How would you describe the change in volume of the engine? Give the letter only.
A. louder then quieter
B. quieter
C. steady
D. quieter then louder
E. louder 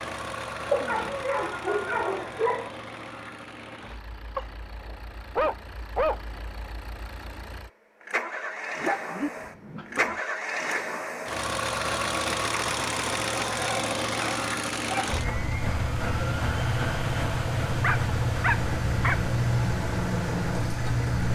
E.